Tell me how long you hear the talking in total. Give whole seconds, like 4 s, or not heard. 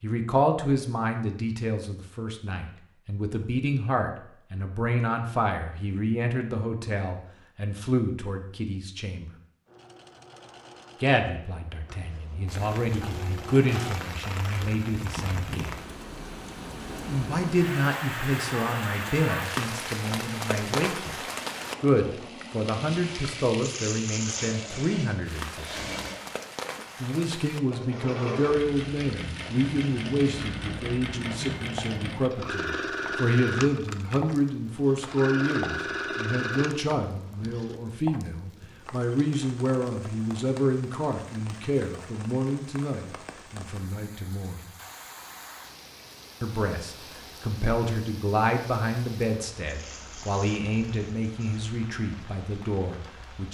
47 s.